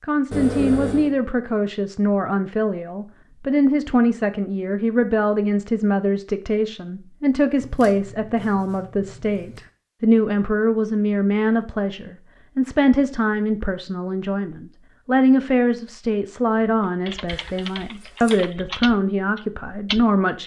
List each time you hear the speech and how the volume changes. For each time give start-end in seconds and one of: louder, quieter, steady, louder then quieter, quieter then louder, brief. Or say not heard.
0.0-20.4 steady.